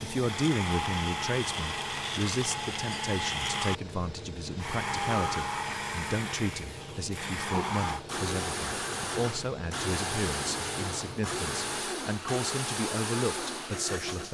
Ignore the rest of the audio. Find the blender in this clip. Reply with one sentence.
The blender can be heard from 0.0 to 14.2 s.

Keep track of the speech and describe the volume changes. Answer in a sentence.
The loudness of the speech stays about the same.